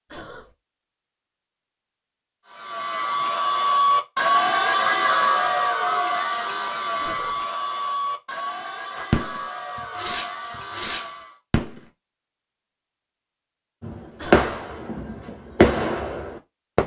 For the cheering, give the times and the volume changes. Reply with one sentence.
The cheering can be heard from 2.5 to 11.4 s, getting quieter.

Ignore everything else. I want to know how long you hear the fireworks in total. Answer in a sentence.
You can hear the fireworks for 6 seconds altogether.